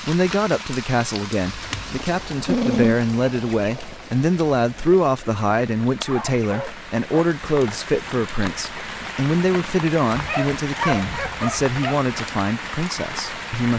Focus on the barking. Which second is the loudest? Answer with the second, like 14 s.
3 s.